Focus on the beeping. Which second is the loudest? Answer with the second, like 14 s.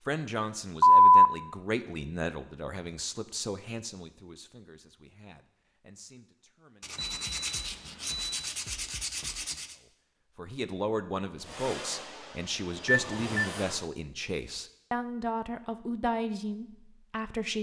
1 s.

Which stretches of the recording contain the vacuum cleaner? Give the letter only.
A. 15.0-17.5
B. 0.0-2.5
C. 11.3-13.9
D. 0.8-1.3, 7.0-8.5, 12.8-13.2
C.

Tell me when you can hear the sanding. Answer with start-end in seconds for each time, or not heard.
6.8-9.8.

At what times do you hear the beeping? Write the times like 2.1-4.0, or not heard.
0.8-1.3, 7.0-8.5, 12.8-13.2.